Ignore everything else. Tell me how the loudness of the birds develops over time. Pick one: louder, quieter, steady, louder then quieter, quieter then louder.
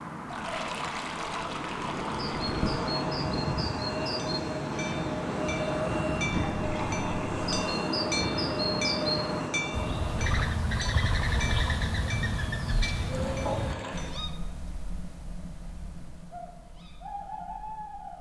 louder then quieter.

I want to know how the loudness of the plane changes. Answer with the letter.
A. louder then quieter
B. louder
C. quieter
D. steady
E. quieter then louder
D.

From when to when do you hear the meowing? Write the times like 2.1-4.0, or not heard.
not heard.